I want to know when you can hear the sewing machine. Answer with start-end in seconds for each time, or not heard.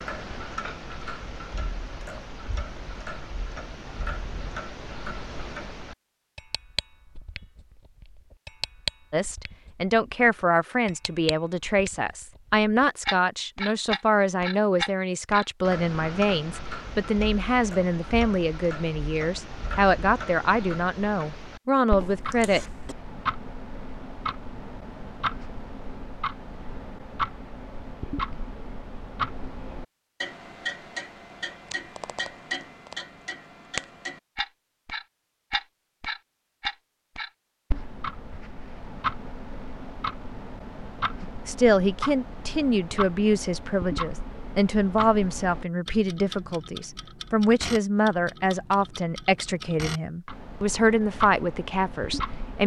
not heard.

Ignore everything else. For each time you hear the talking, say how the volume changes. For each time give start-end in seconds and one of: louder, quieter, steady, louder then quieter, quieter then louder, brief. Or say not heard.
9.1-22.6 steady
41.2-52.6 steady.